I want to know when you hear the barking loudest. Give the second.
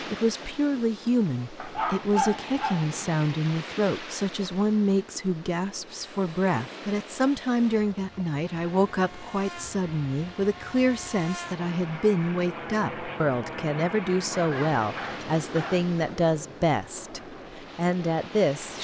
2 s.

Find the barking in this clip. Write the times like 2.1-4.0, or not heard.
1.6-3.0, 14.3-15.8.